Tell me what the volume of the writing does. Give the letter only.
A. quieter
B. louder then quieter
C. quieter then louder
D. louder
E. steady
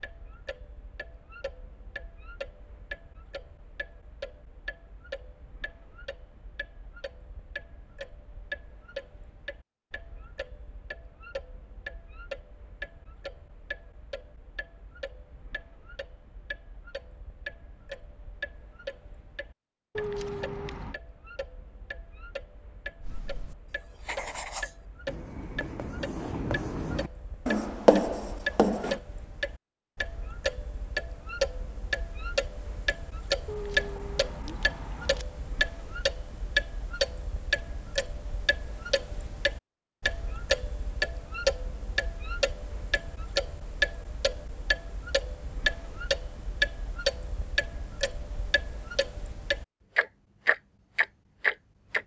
D.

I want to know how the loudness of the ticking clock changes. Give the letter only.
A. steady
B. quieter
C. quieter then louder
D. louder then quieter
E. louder
E.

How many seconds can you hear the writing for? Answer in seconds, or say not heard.
6 s.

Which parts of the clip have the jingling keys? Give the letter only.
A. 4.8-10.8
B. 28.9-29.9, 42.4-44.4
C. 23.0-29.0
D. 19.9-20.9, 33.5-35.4
D.